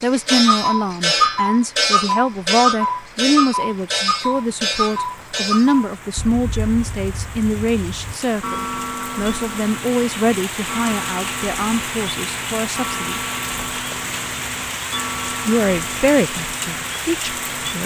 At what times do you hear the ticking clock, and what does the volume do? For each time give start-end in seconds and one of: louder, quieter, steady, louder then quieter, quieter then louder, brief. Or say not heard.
0.0-17.8 quieter.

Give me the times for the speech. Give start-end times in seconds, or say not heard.
0.0-13.2, 15.4-17.8.